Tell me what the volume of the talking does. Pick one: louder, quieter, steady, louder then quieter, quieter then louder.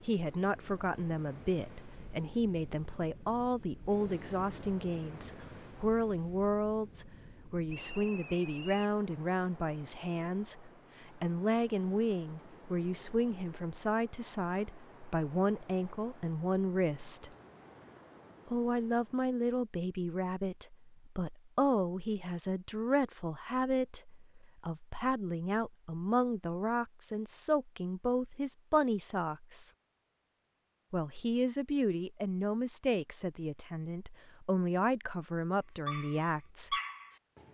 steady.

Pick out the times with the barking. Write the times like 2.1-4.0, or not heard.
35.9-37.4.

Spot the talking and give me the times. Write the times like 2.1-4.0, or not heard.
0.0-17.3, 18.4-29.7, 30.9-36.8.